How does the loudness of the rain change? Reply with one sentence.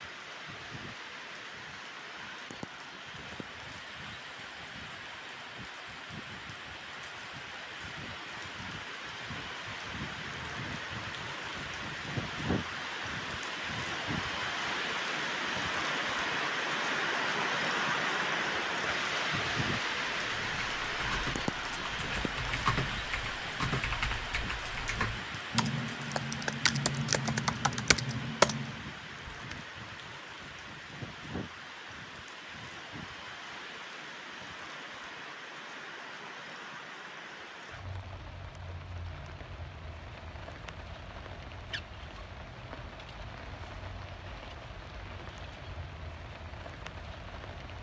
The loudness of the rain goes up, then down.